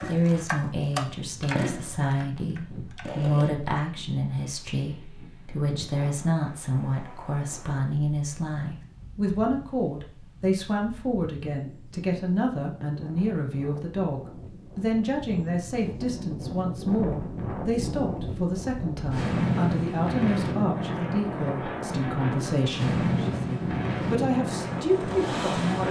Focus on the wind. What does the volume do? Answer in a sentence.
The volume of the wind goes up.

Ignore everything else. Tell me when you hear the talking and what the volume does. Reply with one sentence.
The talking can be heard from 0.0 to 25.8 s, at a steady volume.